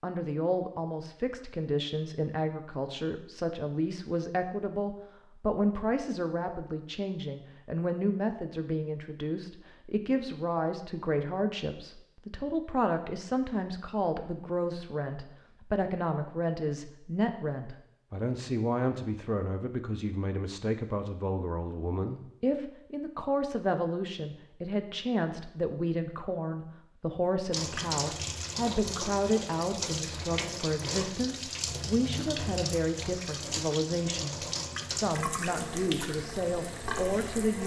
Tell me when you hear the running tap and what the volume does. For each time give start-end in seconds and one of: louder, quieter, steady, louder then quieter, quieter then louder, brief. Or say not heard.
27.5-37.6 steady.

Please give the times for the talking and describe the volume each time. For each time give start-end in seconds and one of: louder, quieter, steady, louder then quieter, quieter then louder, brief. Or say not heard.
0.0-37.6 steady.